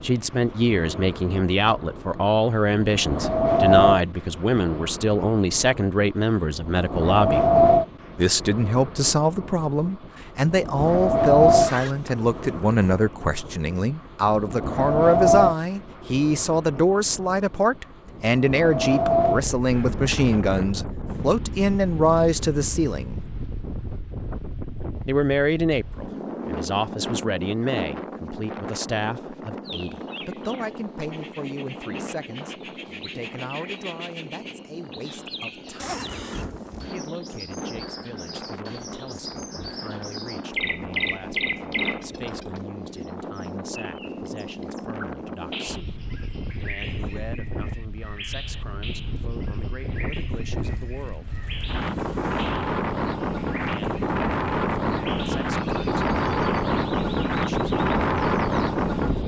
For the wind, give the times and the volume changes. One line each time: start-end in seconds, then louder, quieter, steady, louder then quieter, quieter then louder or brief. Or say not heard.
0.0-59.2 quieter then louder.